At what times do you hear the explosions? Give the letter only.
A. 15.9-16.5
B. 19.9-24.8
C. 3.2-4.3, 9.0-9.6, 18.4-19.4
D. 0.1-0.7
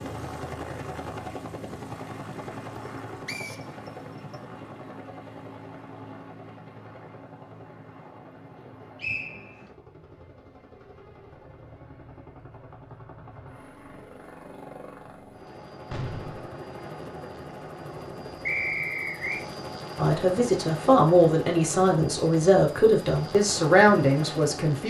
A.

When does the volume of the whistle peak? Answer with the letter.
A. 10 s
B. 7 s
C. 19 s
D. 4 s
C.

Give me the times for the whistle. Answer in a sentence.
You can hear the whistle from 3.2 to 4.3 s, from 9.0 to 9.6 s and from 18.4 to 19.4 s.